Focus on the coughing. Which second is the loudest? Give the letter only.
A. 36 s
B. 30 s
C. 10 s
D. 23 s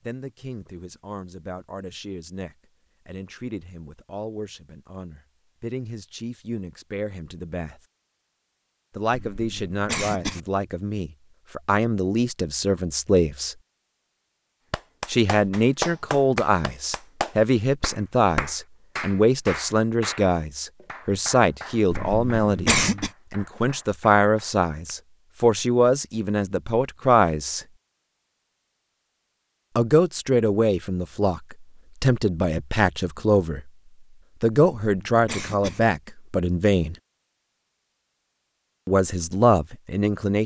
D.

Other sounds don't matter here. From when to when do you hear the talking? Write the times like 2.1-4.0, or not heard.
0.1-7.8, 8.9-13.6, 15.1-27.6, 29.8-33.7, 34.4-37.0, 38.9-40.4.